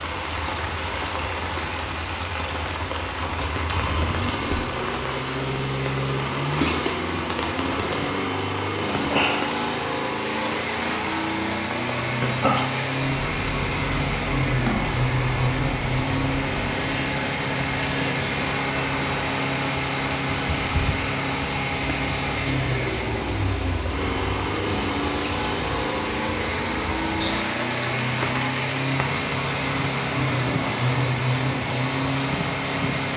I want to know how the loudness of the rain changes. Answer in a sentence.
The loudness of the rain stays about the same.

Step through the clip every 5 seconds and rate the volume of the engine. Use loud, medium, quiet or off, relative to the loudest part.
medium, loud, loud, loud, loud, loud, loud.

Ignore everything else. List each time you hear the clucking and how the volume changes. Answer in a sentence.
You can't hear the clucking here.